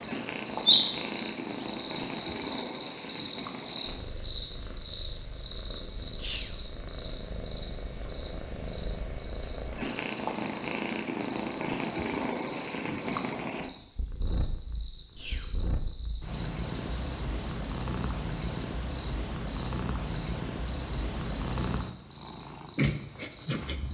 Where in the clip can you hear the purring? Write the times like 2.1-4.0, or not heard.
0.0-23.8.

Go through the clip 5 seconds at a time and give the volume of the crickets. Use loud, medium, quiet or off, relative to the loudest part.
loud, medium, quiet, quiet, quiet.